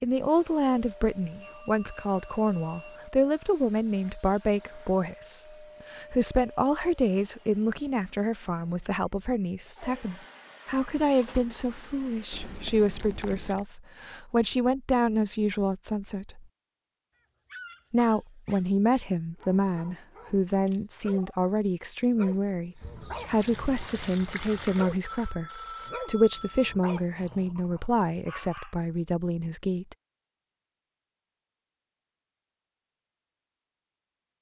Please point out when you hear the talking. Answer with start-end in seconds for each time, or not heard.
0.0-16.4, 17.9-29.9.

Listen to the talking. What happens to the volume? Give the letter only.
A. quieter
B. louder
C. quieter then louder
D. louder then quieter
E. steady
E.